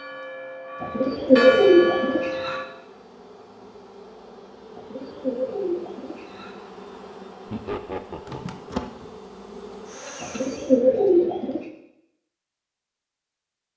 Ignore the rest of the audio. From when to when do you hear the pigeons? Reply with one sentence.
You can hear the pigeons from 0.8 to 2.5 s, from 4.8 to 6.5 s and from 10.2 to 11.6 s.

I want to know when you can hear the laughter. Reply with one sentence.
You can hear the laughter from 7.5 to 8.6 s.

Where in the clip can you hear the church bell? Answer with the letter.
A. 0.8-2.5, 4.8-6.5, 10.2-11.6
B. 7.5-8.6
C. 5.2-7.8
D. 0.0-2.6
D.